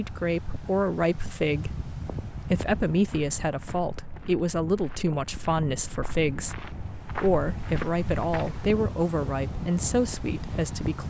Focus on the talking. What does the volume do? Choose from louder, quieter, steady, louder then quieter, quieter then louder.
steady.